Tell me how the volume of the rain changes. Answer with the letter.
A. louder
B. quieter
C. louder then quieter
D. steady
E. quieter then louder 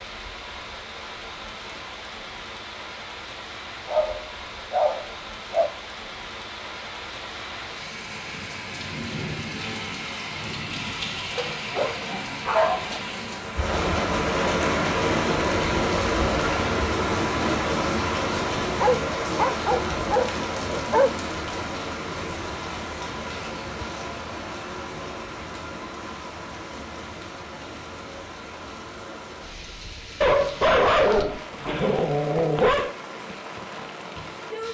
C.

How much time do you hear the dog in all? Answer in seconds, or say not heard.
9 s.